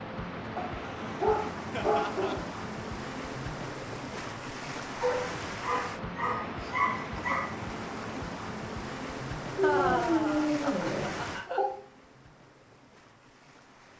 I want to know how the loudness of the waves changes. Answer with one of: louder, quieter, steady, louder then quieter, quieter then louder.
quieter.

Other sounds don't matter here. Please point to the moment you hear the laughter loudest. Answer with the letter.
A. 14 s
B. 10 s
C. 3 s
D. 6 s
B.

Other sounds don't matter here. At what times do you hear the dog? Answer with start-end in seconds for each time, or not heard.
0.6-2.5, 5.0-7.5, 9.6-11.7.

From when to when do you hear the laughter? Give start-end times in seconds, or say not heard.
1.7-2.4, 6.5-7.2, 9.6-11.6.